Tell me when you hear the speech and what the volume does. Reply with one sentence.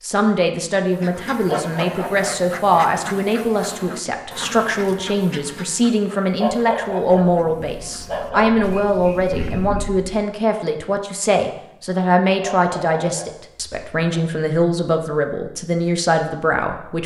The speech can be heard from 0.0 to 17.0 s, at a steady volume.